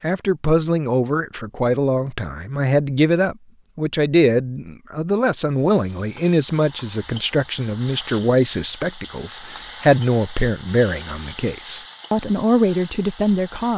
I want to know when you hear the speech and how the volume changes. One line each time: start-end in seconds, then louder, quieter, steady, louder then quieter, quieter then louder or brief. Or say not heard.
0.0-13.7 steady.